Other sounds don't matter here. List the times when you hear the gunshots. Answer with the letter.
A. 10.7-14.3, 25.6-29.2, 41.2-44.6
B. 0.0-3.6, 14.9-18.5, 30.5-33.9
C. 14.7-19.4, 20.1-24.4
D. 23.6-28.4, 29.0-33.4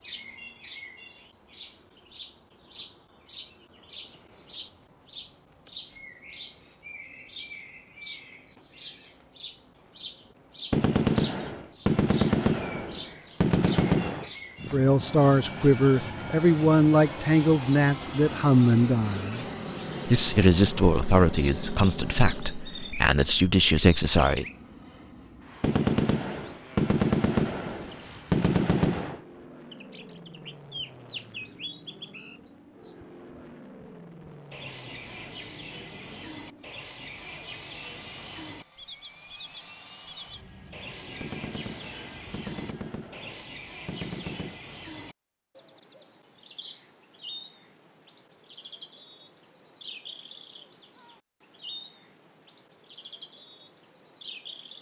A.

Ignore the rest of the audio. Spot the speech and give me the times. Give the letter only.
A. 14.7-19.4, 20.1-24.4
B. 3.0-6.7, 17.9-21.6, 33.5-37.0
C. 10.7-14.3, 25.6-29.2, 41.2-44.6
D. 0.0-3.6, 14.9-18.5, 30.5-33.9
A.